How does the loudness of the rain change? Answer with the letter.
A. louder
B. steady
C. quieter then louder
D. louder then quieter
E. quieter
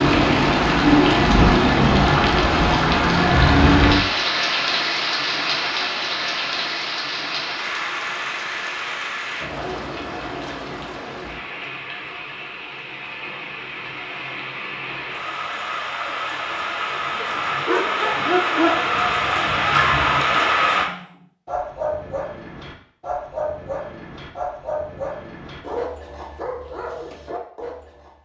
C.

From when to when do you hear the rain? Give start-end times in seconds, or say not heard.
0.0-20.9.